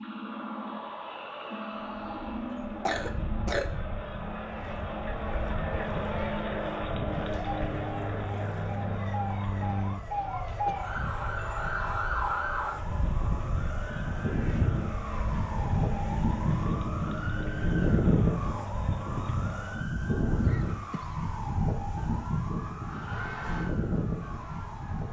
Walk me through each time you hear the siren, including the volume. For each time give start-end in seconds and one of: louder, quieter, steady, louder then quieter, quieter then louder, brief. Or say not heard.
0.0-25.0 louder.